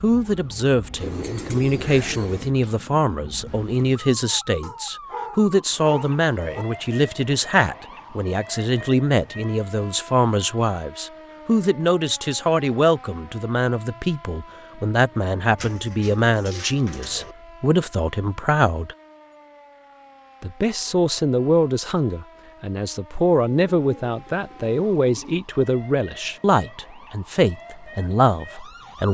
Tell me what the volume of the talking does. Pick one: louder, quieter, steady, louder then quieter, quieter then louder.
steady.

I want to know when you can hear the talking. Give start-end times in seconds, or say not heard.
0.0-18.9, 20.4-29.0.